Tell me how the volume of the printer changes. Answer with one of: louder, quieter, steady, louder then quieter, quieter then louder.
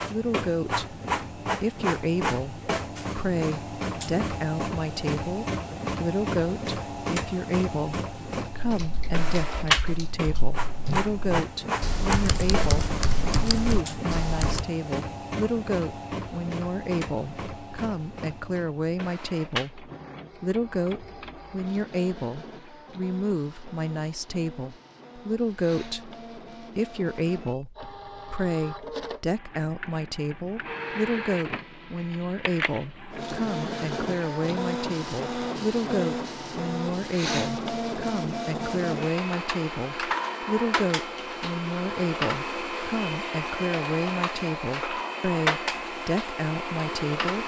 quieter then louder.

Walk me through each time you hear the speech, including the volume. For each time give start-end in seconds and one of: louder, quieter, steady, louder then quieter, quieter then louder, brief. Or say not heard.
0.0-47.4 steady.